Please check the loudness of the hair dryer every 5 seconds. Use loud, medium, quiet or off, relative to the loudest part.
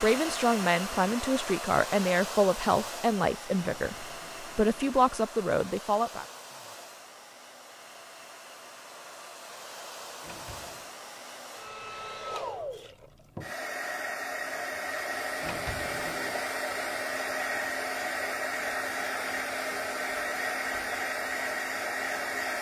medium, quiet, medium, loud, loud.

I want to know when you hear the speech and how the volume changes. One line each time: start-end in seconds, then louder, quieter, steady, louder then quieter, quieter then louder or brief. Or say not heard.
0.0-6.2 steady.